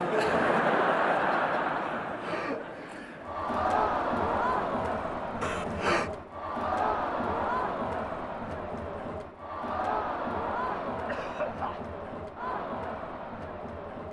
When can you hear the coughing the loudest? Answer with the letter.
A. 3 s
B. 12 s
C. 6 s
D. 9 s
C.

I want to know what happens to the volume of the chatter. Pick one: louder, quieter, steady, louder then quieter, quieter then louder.
quieter.